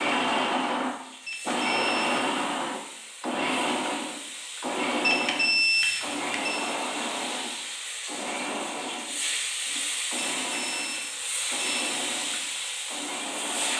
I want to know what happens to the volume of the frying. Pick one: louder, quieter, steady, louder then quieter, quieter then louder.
louder.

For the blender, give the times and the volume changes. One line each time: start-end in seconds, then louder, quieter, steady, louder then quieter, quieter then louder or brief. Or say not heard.
0.0-13.7 quieter.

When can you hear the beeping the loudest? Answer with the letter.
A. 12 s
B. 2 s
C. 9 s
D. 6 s
D.